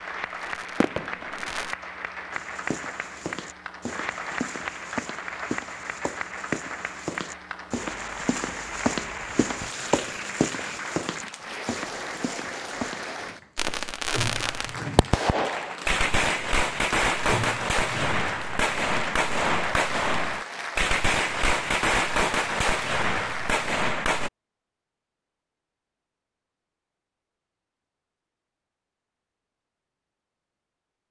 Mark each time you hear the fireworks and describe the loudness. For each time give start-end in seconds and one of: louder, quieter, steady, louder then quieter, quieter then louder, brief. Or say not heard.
0.0-1.8 brief
13.6-24.3 steady.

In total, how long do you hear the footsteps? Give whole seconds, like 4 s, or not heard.
11 s.